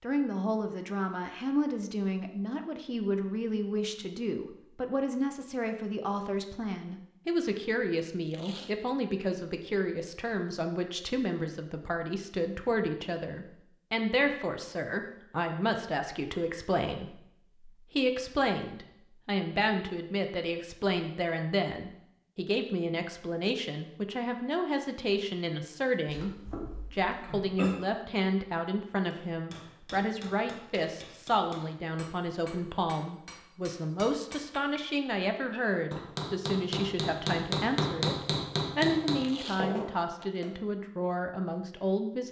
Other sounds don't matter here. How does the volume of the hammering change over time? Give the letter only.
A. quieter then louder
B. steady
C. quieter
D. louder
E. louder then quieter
D.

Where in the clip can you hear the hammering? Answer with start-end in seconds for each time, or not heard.
29.1-40.5.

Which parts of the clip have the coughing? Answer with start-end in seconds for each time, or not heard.
26.1-27.8.